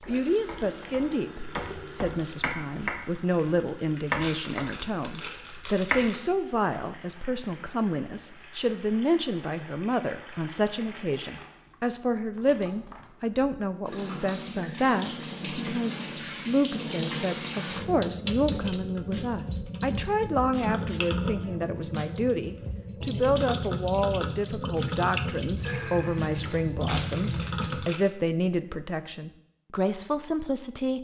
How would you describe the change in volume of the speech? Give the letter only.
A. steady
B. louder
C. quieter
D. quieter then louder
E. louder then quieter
A.